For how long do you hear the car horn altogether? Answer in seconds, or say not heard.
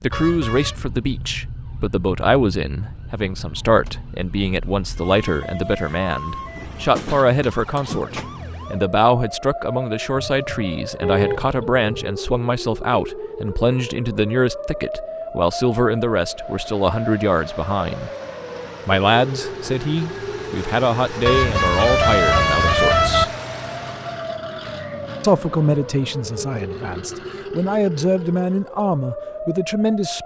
4 s.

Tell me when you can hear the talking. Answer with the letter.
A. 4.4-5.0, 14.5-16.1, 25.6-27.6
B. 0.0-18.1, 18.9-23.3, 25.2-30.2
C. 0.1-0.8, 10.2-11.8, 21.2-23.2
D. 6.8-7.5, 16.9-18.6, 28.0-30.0
B.